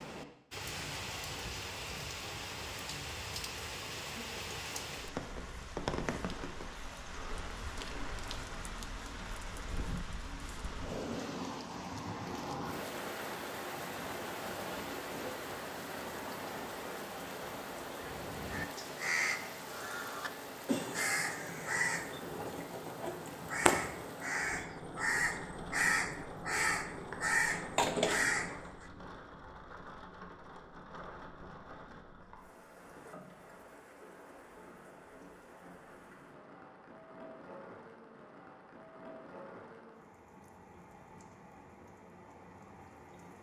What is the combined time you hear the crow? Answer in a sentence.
You can hear the crow for 11 seconds altogether.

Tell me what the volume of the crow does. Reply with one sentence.
The loudness of the crow goes up.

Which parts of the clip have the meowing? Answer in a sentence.
You can't hear the meowing here.